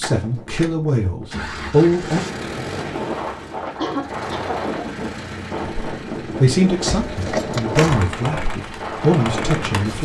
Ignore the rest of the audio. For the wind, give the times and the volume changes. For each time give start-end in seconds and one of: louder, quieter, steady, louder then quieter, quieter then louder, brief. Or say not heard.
0.0-9.9 louder.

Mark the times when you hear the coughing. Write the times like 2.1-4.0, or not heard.
3.8-4.7.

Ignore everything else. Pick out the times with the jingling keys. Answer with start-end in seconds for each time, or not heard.
6.8-8.1.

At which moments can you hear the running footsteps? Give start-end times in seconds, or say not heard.
not heard.